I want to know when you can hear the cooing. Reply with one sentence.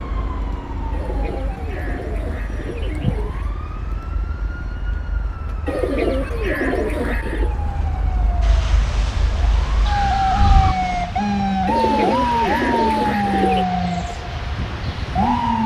The cooing can be heard from 0.9 to 3.5 s, from 5.7 to 7.5 s and from 11.7 to 13.7 s.